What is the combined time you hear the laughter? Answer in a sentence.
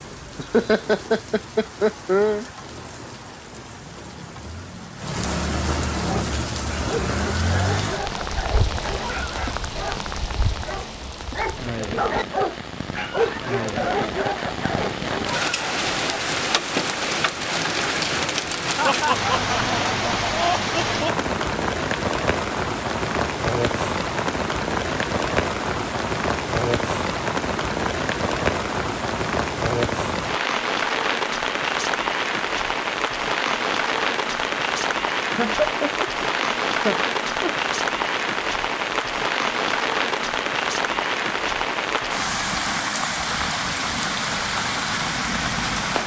You can hear the laughter for 7 seconds altogether.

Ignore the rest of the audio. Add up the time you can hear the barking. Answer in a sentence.
You can hear the barking for 10 seconds altogether.